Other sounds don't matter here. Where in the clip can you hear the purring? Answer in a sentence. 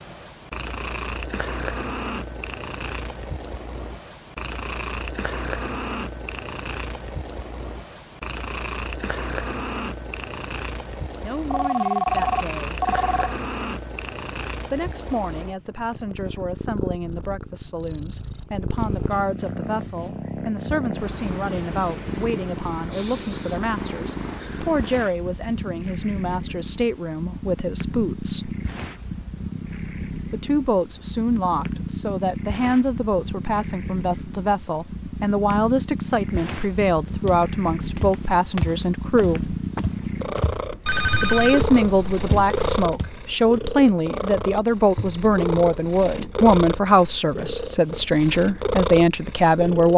The purring can be heard from 0.0 to 49.9 s.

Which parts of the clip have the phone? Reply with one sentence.
The phone can be heard from 11.5 to 13.3 s and from 40.9 to 42.9 s.